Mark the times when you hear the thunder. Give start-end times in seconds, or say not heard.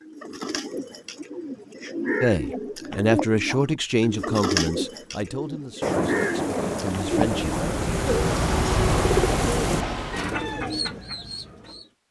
5.8-9.8.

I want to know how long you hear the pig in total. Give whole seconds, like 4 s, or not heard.
not heard.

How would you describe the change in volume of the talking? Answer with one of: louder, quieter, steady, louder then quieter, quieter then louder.
quieter.